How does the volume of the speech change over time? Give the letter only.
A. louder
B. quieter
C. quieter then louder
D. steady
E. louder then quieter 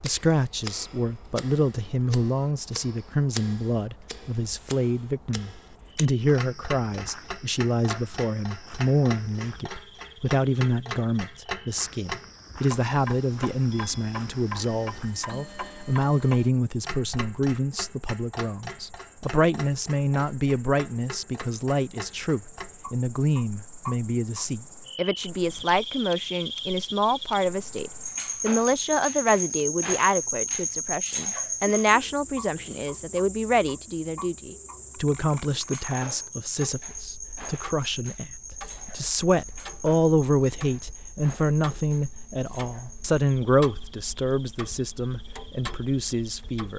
D.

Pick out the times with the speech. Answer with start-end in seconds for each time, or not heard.
0.0-46.7.